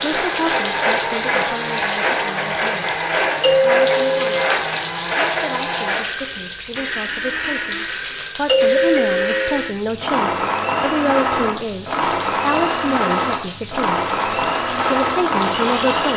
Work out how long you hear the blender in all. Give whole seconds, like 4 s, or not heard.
16 s.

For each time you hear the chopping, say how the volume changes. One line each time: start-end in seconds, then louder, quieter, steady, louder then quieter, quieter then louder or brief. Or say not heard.
not heard.